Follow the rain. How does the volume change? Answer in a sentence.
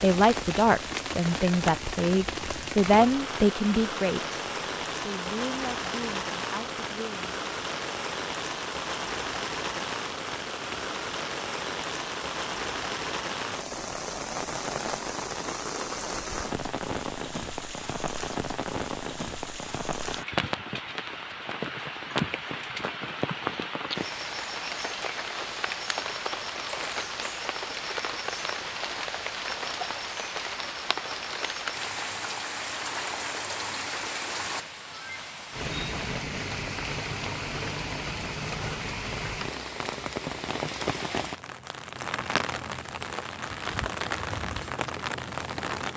The volume of the rain stays about the same.